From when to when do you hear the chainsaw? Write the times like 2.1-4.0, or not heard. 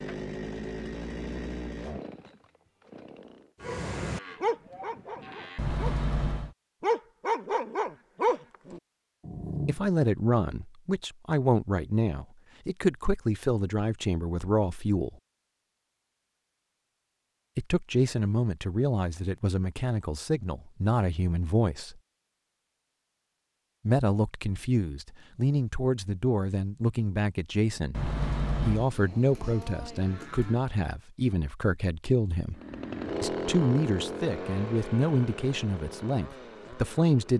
0.0-3.5, 32.5-37.3.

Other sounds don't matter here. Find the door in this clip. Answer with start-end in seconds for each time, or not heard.
5.5-6.5, 27.9-28.9.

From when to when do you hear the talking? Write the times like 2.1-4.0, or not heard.
9.7-15.1, 17.6-21.9, 23.9-28.0, 28.6-32.5, 33.2-37.3.